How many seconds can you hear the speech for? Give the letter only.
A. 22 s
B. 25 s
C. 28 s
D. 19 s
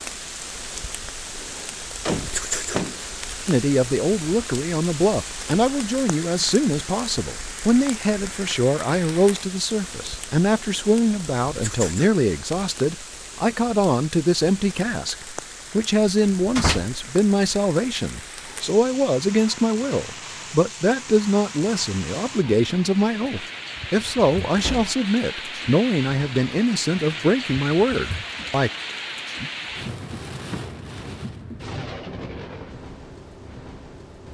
B.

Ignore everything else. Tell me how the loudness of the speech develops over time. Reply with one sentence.
The volume of the speech stays about the same.